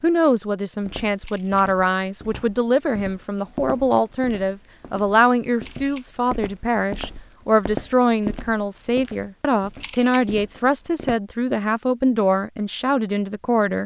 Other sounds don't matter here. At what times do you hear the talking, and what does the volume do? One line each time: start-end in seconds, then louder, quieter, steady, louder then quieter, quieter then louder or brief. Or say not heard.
0.0-13.8 steady.